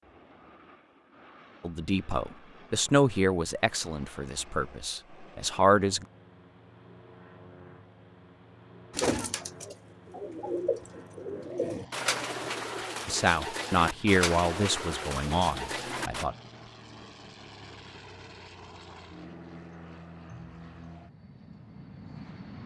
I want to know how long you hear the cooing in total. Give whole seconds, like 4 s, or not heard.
7 s.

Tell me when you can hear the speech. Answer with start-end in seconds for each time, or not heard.
1.6-6.0, 13.1-16.4.